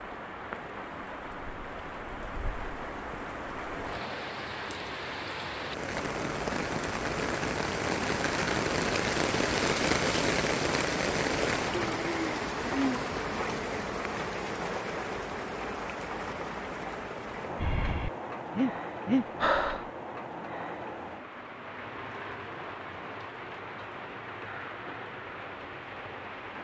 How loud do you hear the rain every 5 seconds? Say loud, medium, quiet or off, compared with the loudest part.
medium, loud, loud, medium, medium, medium.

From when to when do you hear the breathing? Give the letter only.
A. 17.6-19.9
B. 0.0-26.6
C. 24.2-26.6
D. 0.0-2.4
A.